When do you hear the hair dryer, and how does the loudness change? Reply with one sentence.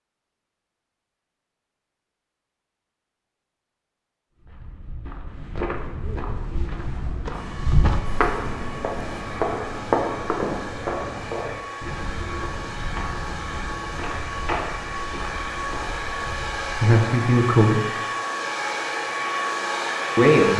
The hair dryer can be heard from 7.3 to 20.5 s, getting louder.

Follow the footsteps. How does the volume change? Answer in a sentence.
The volume of the footsteps goes up, then down.